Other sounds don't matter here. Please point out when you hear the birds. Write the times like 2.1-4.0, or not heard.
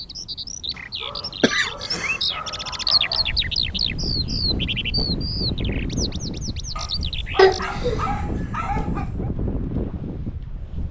0.0-7.7.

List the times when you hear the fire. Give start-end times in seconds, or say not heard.
not heard.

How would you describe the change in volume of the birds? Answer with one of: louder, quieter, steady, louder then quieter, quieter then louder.
louder then quieter.